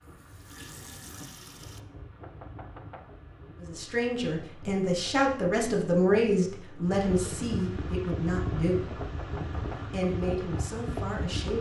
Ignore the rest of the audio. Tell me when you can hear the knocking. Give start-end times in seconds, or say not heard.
2.1-3.2, 8.9-10.0.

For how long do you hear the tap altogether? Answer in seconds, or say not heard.
2 s.